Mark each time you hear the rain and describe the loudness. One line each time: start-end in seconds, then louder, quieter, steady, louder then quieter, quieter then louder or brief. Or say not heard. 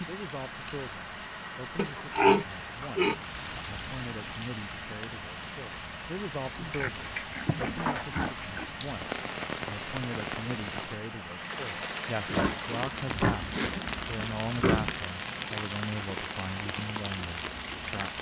0.0-18.1 steady.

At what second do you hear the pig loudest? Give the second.
2 s.